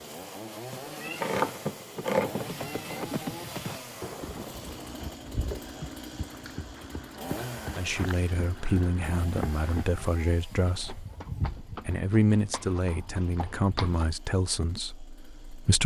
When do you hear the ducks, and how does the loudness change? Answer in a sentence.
The ducks can't be heard in this clip.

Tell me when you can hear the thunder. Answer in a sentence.
The thunder can be heard from 3.8 to 5.2 s.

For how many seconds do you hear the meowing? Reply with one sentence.
The meowing can be heard for 2 seconds in total.